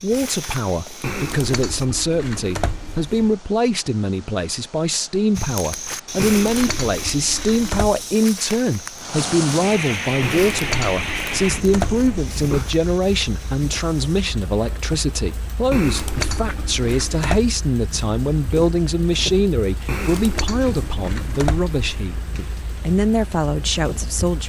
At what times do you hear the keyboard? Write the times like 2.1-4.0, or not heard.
1.0-3.4, 6.2-8.1, 10.2-12.7, 15.7-17.4, 19.9-22.1.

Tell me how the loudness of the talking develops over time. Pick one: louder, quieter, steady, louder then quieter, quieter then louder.
steady.